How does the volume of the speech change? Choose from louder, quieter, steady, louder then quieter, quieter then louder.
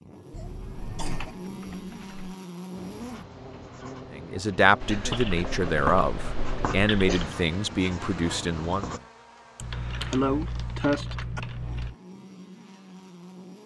quieter.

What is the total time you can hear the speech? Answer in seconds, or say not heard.
5 s.